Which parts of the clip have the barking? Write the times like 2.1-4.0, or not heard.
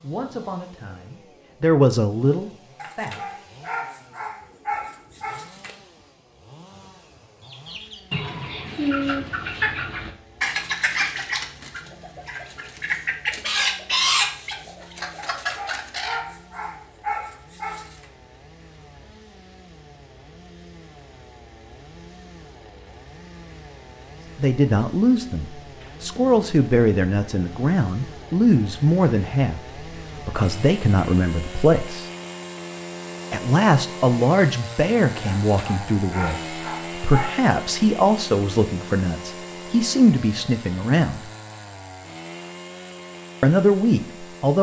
2.8-5.8, 15.2-18.1, 35.2-37.4.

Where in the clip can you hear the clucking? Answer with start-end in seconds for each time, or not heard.
7.5-16.2.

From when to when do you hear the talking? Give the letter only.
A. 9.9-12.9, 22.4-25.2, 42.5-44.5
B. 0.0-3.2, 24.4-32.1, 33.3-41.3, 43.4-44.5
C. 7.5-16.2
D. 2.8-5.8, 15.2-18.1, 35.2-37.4
B.